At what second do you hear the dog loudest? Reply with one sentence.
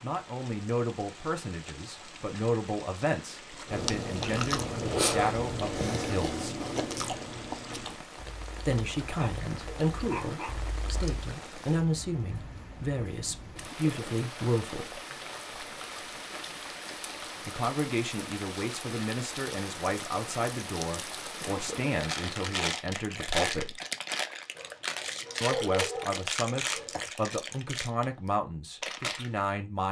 The volume of the dog peaks at 26 seconds.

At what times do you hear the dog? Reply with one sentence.
The dog can be heard from 9.2 to 10.6 s and from 24.6 to 27.1 s.